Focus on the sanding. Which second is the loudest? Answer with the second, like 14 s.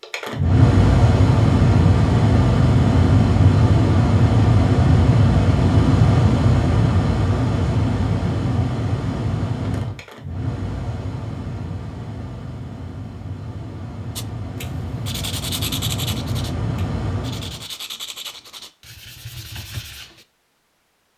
16 s.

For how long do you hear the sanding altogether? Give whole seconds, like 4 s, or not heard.
6 s.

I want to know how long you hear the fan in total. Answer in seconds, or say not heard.
18 s.